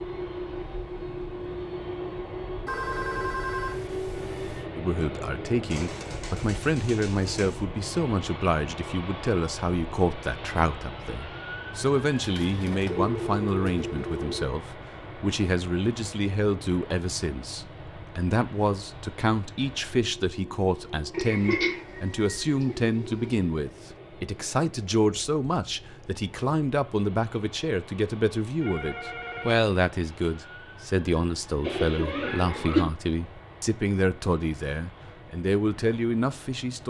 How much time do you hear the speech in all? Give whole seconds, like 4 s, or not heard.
32 s.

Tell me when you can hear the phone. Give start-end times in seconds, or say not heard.
2.6-4.7, 12.8-14.5, 28.6-29.6.